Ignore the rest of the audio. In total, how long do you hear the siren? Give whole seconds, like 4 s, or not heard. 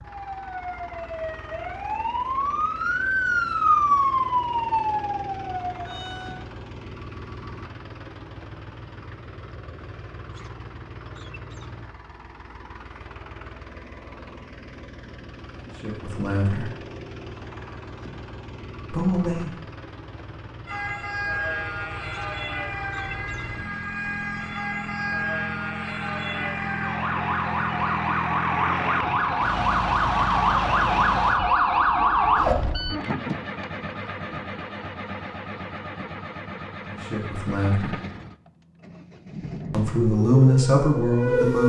20 s.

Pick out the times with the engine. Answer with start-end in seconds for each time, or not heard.
0.0-40.0.